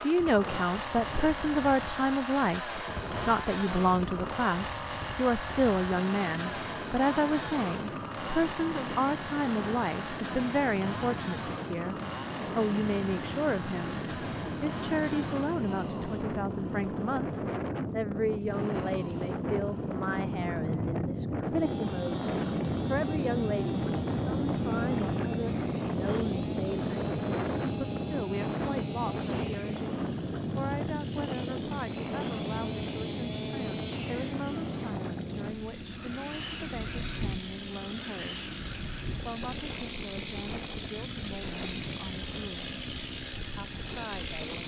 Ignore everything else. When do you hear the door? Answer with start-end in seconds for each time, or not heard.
not heard.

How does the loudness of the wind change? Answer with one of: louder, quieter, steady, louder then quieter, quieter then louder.
louder then quieter.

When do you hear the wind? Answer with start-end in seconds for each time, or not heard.
0.0-44.6.